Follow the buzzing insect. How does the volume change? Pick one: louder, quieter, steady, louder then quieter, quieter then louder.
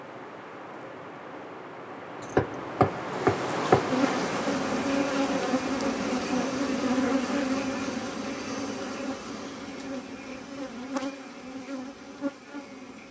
quieter.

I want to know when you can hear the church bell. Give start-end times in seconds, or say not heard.
not heard.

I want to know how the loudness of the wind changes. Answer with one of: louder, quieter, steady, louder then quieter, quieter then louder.
louder then quieter.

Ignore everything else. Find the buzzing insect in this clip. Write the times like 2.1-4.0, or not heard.
3.9-13.0.